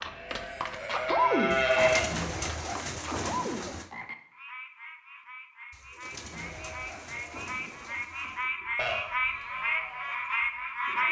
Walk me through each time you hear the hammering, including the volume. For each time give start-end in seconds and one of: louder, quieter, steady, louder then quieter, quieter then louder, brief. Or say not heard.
not heard.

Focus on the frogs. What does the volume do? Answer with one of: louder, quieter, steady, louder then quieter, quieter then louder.
quieter then louder.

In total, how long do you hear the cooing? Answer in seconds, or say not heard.
5 s.